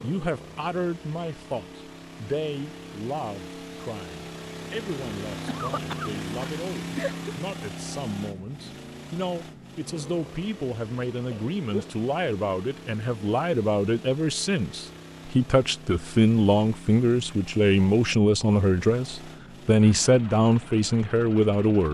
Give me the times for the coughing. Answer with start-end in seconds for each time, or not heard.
5.5-7.5, 11.3-11.9.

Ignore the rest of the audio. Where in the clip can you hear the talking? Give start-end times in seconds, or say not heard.
0.0-21.8.